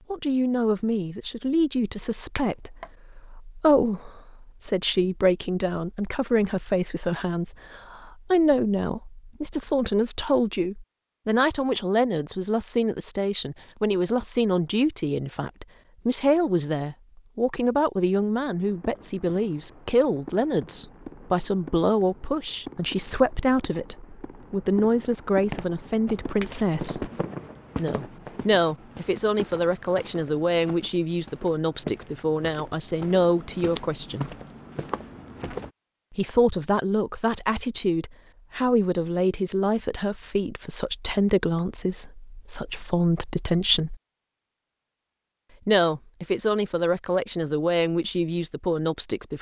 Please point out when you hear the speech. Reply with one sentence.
You can hear the speech from 0.1 to 27.1 s, from 27.8 to 34.3 s, from 36.1 to 44.0 s and from 45.6 to 49.3 s.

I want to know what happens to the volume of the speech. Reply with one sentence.
The loudness of the speech stays about the same.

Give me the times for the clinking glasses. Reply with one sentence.
You can hear the clinking glasses from 2.4 to 2.9 s, from 26.4 to 26.9 s and from 41.1 to 41.6 s.